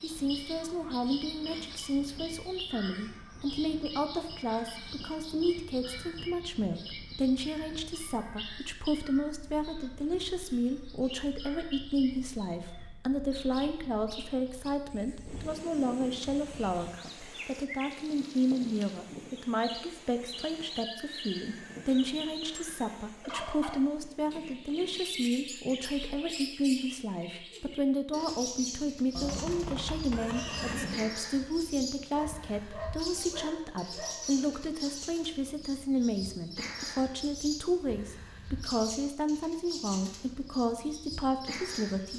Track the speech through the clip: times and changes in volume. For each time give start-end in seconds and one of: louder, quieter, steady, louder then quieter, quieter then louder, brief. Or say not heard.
0.0-42.1 steady.